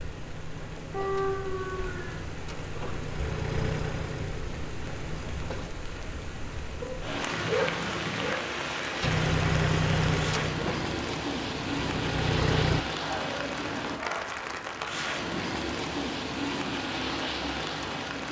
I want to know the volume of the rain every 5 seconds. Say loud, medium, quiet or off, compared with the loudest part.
medium, loud, loud, loud.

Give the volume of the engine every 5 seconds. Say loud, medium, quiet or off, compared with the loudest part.
medium, loud, loud, off.